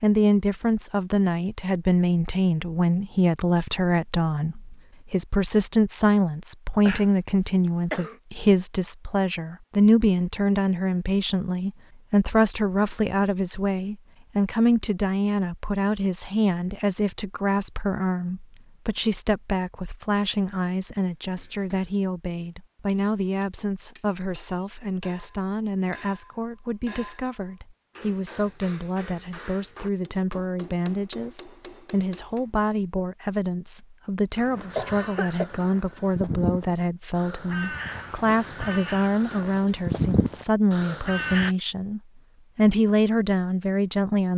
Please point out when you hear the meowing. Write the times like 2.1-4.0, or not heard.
not heard.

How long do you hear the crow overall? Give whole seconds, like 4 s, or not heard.
7 s.